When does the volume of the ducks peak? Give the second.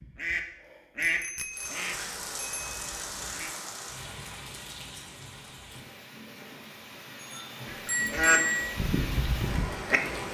8 s.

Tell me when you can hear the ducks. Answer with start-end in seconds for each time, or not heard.
0.0-3.5, 7.7-10.3.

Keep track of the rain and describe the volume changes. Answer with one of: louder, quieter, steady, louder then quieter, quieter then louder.
quieter then louder.